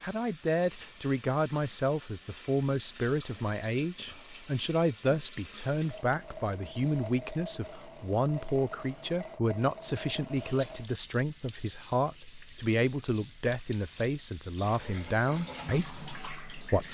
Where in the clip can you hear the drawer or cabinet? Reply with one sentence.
You can't hear the drawer or cabinet here.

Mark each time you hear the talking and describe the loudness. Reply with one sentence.
The talking can be heard from 0.0 to 16.8 s, at a steady volume.